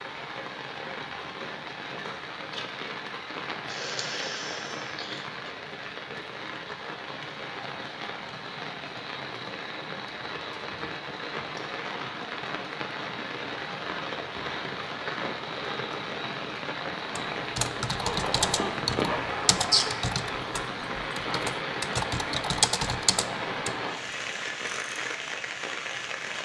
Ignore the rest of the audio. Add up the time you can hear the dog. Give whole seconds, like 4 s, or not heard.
2 s.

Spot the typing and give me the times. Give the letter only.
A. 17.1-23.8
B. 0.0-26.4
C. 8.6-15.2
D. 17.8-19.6
A.